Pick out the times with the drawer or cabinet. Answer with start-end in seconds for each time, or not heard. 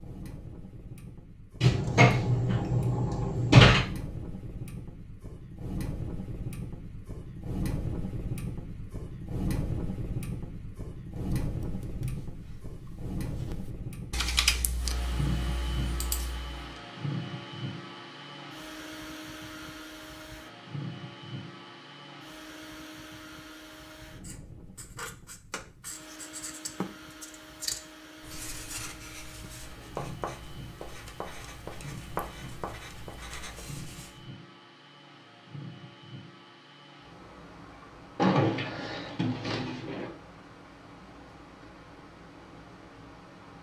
1.6-3.9, 38.1-40.1.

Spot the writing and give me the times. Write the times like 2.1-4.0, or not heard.
24.2-34.2.